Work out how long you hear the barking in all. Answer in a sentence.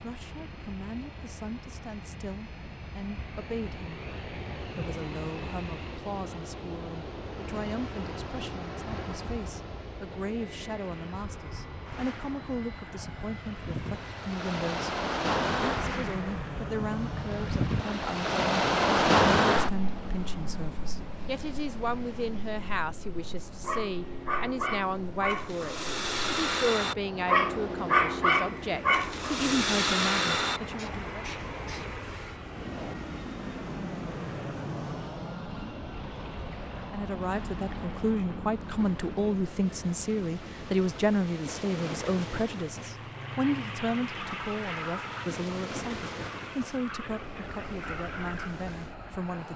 The barking can be heard for 8 seconds in total.